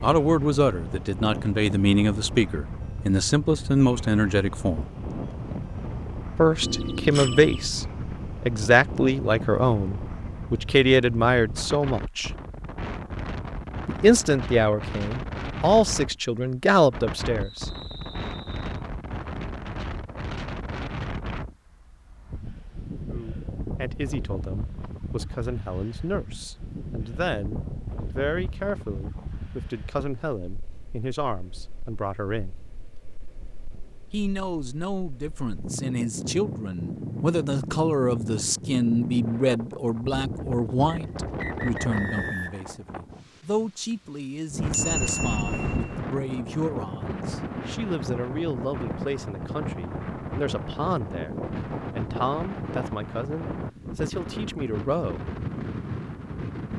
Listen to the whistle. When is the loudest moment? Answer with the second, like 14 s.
42 s.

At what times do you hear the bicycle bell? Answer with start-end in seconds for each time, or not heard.
6.6-7.7, 44.6-46.0.